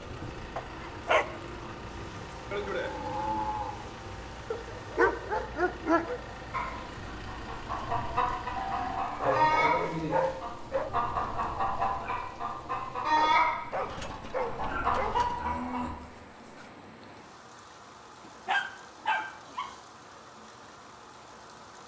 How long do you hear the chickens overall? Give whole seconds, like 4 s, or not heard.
9 s.